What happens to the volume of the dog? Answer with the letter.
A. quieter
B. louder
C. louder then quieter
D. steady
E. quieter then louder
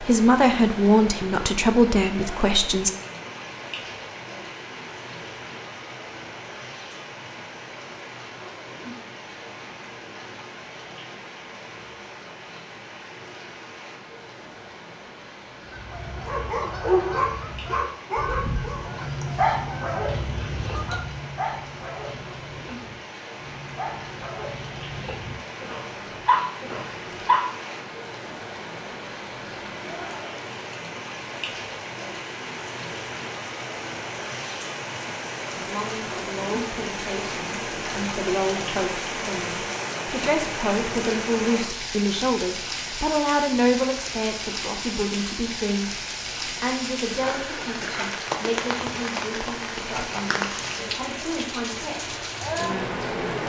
E.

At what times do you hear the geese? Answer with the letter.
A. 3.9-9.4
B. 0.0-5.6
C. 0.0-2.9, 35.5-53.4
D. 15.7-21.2
D.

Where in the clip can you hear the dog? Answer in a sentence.
You can hear the dog from 16.2 to 27.4 s.